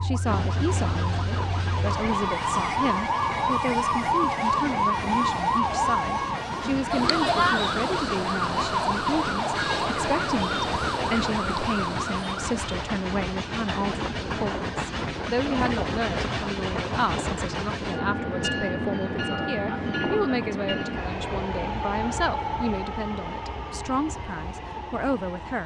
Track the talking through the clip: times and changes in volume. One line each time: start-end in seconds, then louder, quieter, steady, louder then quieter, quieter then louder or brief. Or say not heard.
0.0-25.6 steady.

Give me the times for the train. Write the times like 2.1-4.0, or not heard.
0.1-25.6.